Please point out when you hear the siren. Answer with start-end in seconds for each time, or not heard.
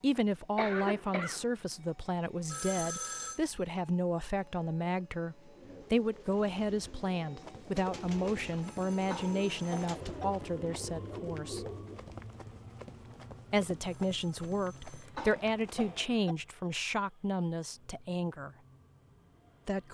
not heard.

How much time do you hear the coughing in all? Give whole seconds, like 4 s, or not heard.
3 s.